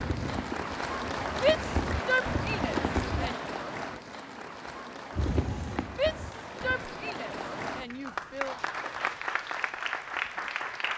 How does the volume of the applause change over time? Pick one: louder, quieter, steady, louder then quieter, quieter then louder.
quieter then louder.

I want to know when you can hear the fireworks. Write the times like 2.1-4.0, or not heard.
0.0-3.4, 5.2-6.8.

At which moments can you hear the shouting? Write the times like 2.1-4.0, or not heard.
1.4-3.4, 5.9-8.6.